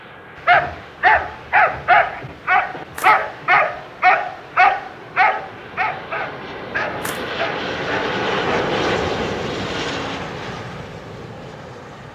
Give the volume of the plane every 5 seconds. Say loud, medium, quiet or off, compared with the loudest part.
quiet, loud, medium.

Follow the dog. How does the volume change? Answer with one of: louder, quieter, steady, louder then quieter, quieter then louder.
quieter.